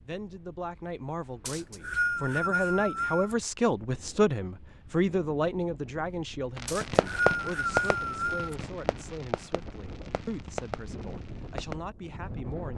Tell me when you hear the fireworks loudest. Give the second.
7 s.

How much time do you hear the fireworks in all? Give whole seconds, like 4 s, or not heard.
5 s.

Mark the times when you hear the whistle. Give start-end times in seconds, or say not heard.
1.4-3.4, 6.7-8.6.